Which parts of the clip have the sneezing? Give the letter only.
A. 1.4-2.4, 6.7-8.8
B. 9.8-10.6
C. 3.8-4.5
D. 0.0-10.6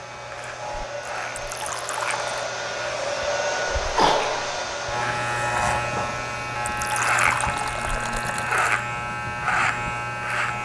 C.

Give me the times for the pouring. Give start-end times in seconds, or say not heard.
1.4-2.4, 6.7-8.8.